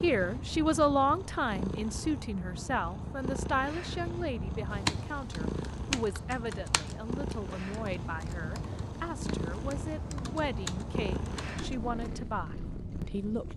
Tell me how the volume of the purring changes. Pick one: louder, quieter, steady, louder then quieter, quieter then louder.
steady.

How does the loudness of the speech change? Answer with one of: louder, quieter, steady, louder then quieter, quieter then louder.
quieter.